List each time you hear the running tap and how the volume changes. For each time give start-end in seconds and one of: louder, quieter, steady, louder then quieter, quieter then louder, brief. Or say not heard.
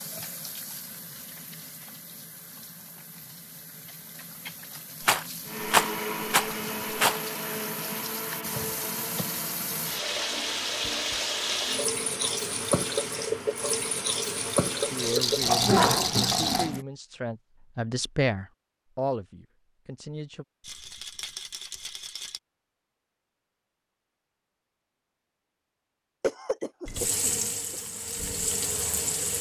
0.0-16.9 louder
26.9-29.3 brief.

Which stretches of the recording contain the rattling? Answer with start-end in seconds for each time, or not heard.
5.0-7.2, 14.9-16.7, 20.6-22.4.